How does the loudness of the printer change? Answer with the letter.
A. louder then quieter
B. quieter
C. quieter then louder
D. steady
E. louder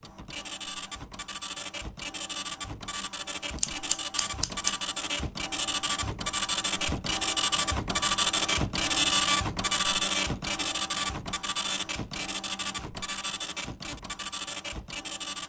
A.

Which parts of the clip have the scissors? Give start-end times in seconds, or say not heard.
3.5-4.8.